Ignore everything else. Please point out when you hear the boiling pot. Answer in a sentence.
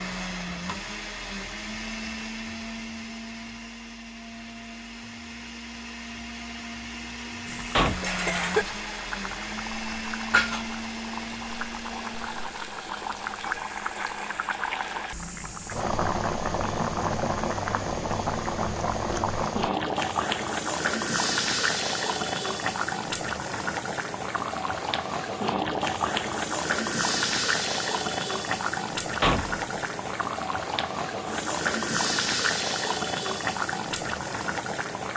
The boiling pot can be heard from 7.5 to 35.1 s.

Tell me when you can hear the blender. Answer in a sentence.
The blender can be heard from 0.0 to 12.6 s.